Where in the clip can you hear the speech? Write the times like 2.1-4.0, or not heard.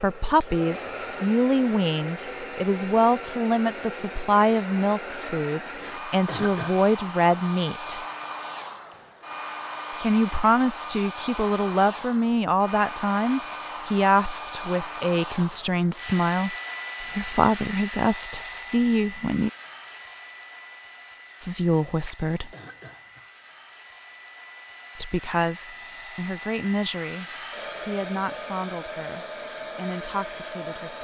0.0-8.0, 10.0-19.5, 21.4-22.5, 24.9-30.9.